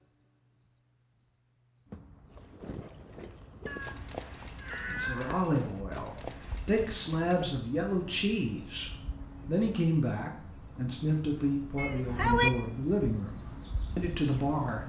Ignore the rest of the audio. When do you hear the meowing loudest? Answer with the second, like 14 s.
12 s.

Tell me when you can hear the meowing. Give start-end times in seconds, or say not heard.
3.6-5.5, 11.8-12.5.